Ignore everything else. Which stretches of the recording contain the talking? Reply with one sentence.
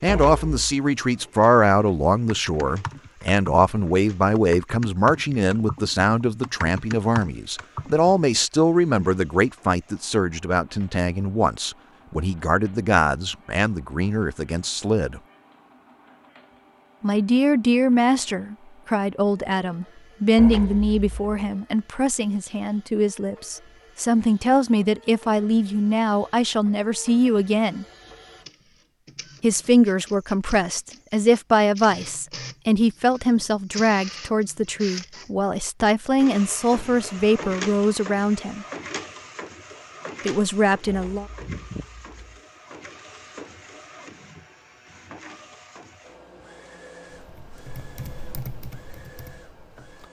The talking can be heard from 0.0 to 15.2 s, from 17.0 to 27.9 s, from 29.4 to 38.6 s and from 40.2 to 41.2 s.